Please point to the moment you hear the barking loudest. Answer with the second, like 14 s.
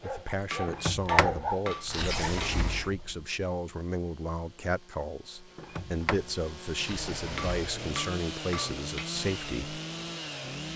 1 s.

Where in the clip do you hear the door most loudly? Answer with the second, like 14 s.
1 s.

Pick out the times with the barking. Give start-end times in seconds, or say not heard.
0.0-2.4.